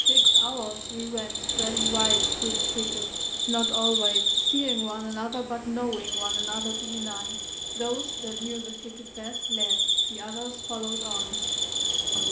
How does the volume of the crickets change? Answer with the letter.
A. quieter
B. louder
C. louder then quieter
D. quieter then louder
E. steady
D.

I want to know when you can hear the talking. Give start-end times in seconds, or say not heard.
0.0-11.4.